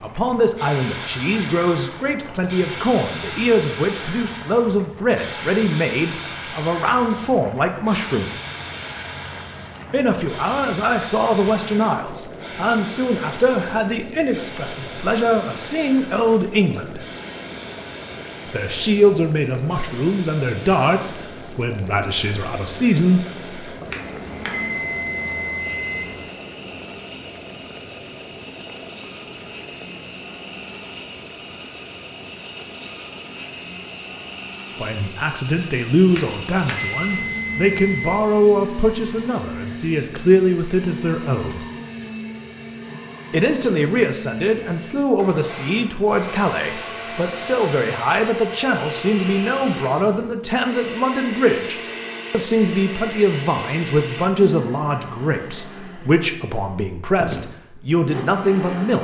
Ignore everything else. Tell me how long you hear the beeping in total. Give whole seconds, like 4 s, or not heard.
5 s.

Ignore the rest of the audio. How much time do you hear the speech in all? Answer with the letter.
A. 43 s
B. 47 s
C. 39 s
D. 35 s
A.